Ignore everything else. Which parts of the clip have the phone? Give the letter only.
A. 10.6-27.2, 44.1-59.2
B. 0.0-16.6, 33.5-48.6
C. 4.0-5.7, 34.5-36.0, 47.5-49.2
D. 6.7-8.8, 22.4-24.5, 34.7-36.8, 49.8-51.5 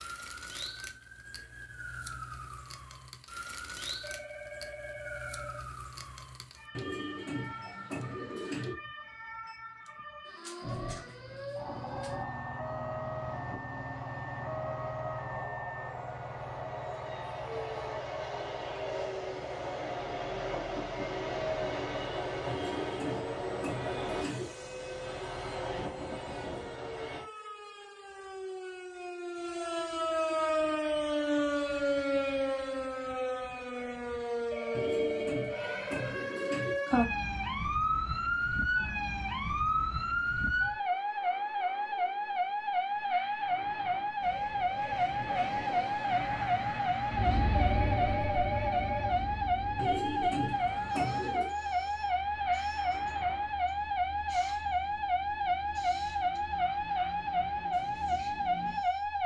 C.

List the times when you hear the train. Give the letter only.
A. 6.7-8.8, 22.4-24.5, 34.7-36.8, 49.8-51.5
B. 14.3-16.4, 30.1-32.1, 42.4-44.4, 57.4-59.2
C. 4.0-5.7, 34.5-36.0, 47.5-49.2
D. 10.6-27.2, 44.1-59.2
D.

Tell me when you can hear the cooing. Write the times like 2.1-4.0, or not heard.
6.7-8.8, 22.4-24.5, 34.7-36.8, 49.8-51.5.